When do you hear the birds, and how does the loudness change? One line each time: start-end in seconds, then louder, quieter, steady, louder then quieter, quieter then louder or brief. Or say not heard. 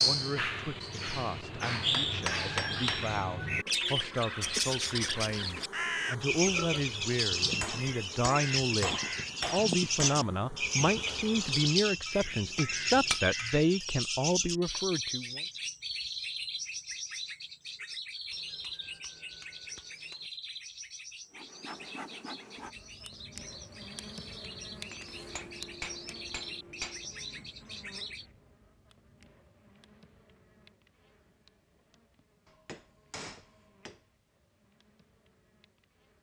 0.0-28.2 quieter.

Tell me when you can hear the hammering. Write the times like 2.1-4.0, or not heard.
1.9-3.1, 7.6-10.2, 12.1-13.6, 18.3-20.3, 24.9-27.1, 32.5-34.0.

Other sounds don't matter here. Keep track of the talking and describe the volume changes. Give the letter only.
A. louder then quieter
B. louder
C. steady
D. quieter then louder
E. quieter
B.